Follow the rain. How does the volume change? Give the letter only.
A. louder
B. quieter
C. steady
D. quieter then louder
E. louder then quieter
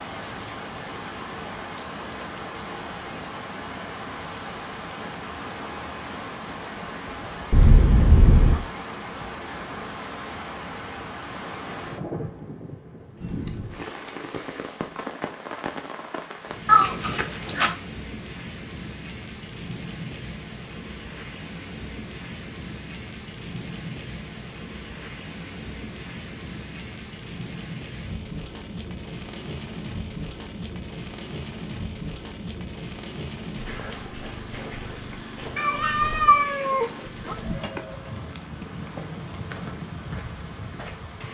C.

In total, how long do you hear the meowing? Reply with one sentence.
You can hear the meowing for 4 seconds altogether.